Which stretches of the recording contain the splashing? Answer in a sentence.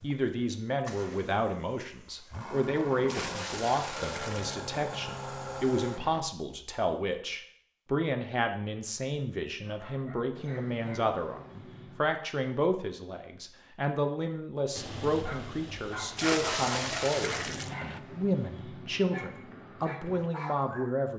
The splashing can be heard from 3.0 to 4.7 s and from 16.1 to 17.8 s.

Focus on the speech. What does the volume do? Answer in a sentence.
The volume of the speech stays about the same.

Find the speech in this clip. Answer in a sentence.
The speech can be heard from 0.0 to 21.1 s.